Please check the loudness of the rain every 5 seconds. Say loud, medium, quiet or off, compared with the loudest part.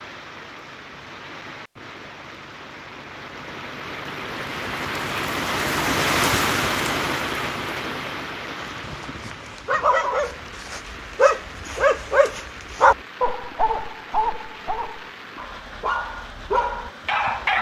medium, loud, quiet, quiet.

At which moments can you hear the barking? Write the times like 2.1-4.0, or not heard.
8.7-17.5.